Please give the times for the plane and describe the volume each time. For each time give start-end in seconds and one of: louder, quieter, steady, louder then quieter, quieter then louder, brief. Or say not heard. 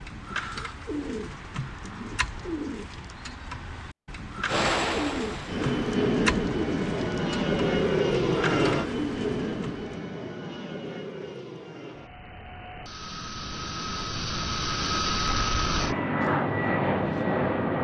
4.5-17.7 quieter then louder.